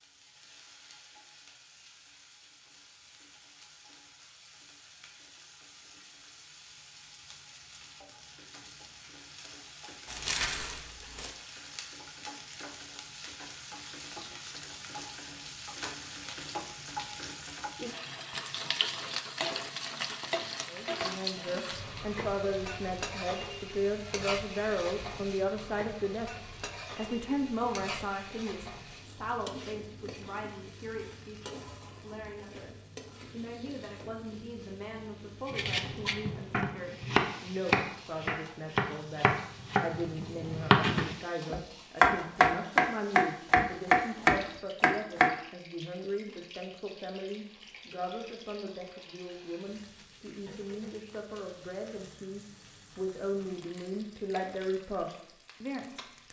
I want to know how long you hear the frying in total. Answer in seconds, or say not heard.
56 s.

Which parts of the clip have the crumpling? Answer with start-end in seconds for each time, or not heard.
10.1-11.3.